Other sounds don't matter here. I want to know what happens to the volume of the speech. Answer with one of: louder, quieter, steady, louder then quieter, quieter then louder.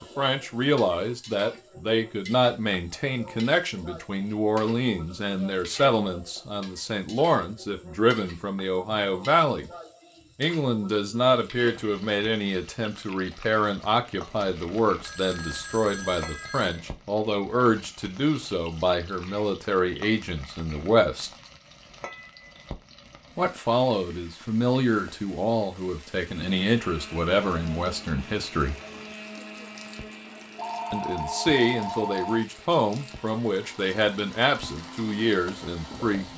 steady.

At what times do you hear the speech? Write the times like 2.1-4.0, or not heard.
0.0-9.7, 10.3-21.3, 23.4-28.8, 30.9-36.3.